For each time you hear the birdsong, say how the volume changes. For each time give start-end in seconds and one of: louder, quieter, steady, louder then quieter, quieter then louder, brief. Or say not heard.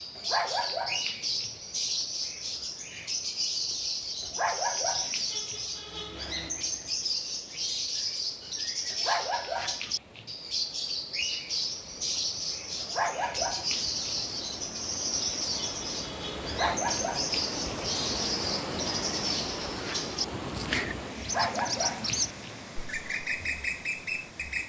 0.0-24.6 steady.